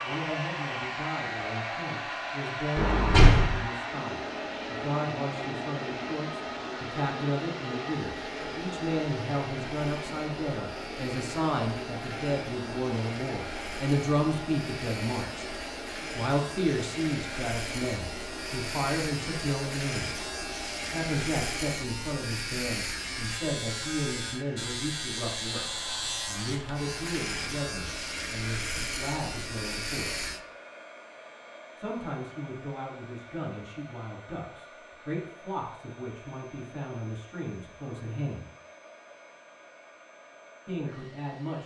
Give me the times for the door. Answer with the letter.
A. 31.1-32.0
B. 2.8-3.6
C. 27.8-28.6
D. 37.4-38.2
B.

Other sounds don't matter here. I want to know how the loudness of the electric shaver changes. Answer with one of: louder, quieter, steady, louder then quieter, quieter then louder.
louder.